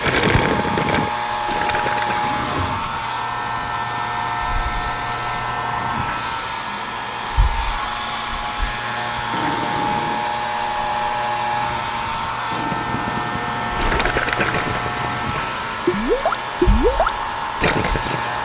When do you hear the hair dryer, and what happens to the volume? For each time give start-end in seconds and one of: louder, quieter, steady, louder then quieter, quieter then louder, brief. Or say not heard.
0.0-18.3 steady.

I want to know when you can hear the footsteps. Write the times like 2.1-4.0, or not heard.
not heard.